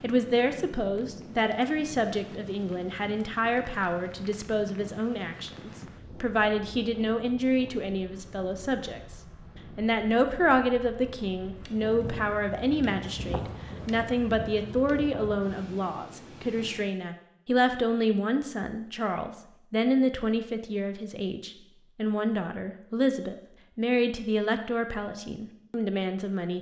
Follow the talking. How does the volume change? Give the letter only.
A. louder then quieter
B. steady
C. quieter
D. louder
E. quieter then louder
B.